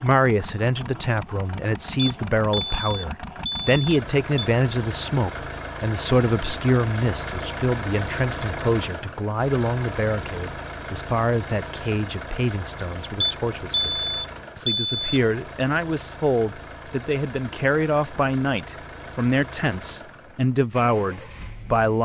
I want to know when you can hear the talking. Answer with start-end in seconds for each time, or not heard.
0.0-22.0.